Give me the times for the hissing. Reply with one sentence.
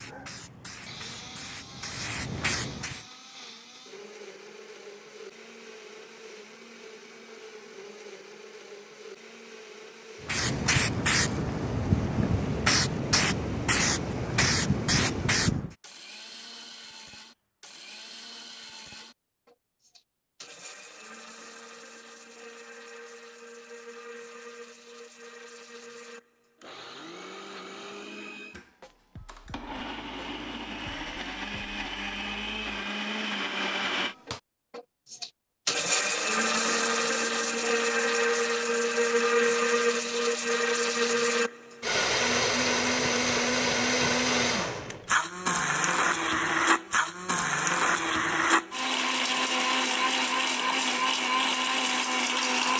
The hissing can be heard from 0.0 to 3.0 s and from 10.2 to 15.8 s.